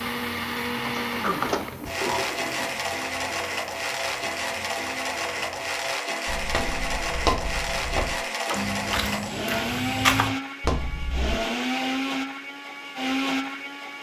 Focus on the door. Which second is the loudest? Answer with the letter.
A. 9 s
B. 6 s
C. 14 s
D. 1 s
D.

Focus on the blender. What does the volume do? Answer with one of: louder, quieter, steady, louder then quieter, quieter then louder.
steady.